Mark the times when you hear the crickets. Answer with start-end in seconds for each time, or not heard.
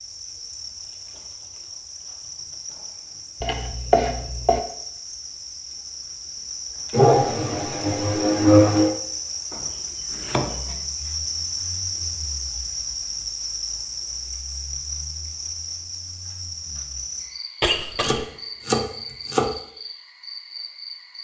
0.0-21.2.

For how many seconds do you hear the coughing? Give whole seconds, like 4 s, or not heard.
3 s.